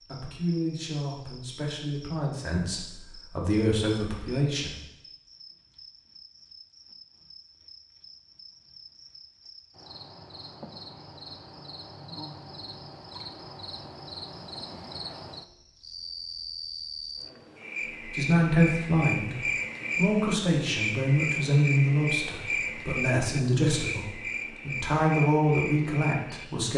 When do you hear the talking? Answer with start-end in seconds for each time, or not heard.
0.1-4.8, 18.0-26.7.